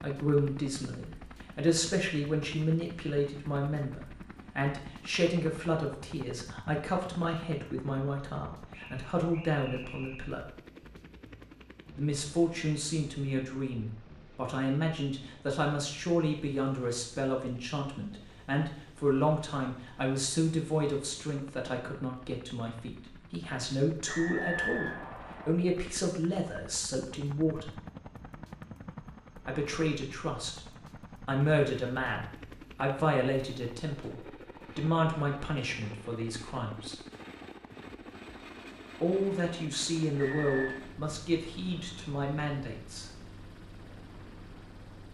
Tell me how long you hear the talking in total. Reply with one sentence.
The talking can be heard for 37 seconds in total.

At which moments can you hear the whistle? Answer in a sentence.
The whistle can be heard from 8.7 to 10.3 s, from 24.1 to 25.6 s and from 40.1 to 40.8 s.